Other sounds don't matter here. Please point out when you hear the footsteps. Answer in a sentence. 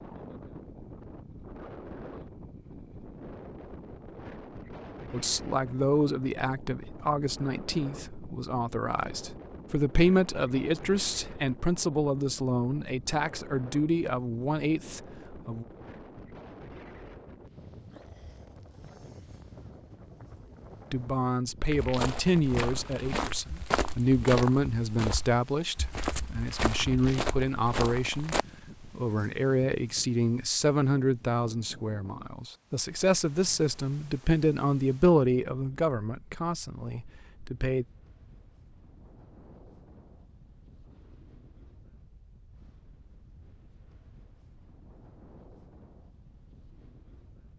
The footsteps can be heard from 21.7 to 28.4 s.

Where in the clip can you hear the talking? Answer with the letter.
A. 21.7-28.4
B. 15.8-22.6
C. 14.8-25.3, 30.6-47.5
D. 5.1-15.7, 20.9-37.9
D.